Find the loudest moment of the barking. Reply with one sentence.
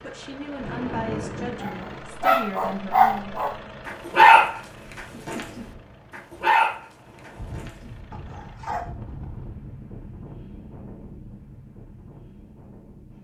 The loudest moment of the barking is at 4 seconds.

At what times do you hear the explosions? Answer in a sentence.
You can hear the explosions from 0.6 to 2.0 s.